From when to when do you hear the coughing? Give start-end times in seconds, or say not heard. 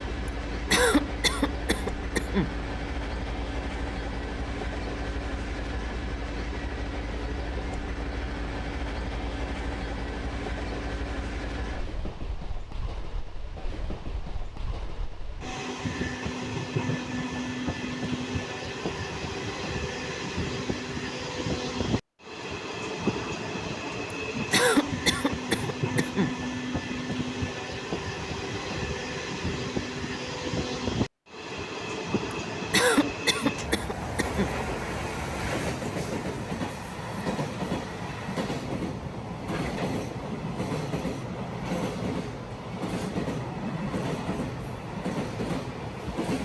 0.7-2.5, 24.5-26.4, 32.7-34.5.